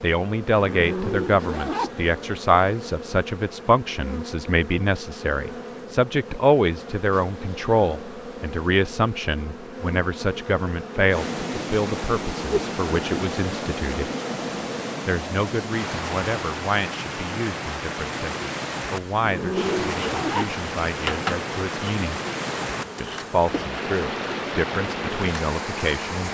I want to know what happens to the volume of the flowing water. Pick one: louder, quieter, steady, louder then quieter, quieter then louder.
steady.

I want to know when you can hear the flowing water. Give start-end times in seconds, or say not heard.
11.1-26.2.